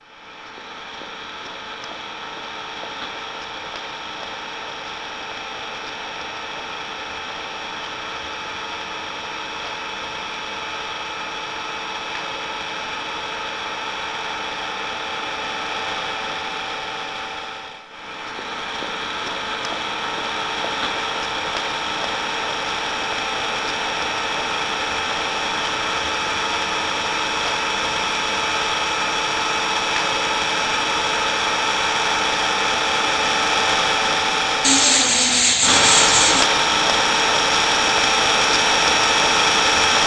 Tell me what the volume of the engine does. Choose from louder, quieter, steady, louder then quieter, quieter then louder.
louder.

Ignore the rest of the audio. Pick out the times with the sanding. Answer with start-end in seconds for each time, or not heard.
34.6-36.5.